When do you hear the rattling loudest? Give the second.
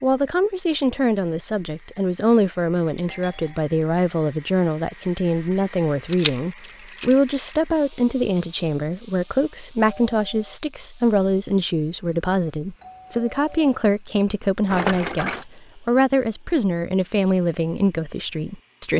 15 s.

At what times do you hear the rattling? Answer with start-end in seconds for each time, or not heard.
6.1-7.5, 14.7-15.4.